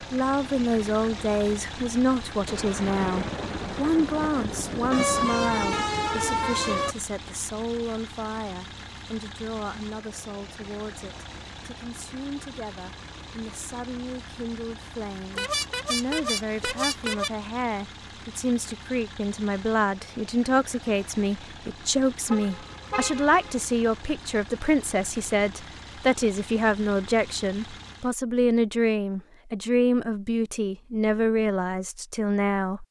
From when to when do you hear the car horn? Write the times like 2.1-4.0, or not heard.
4.9-7.0, 15.3-17.3, 22.3-23.6.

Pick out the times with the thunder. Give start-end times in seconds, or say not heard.
2.5-6.3.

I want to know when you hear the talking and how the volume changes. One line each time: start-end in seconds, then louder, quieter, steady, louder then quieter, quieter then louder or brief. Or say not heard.
0.1-32.8 quieter then louder.